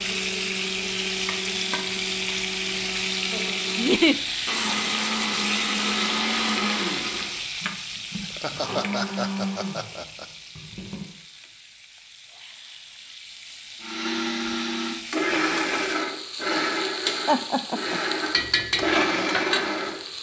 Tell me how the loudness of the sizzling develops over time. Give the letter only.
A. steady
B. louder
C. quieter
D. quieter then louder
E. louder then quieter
D.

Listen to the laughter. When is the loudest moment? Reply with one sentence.
The volume of the laughter peaks at 4 seconds.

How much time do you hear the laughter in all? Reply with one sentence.
You can hear the laughter for 3 seconds altogether.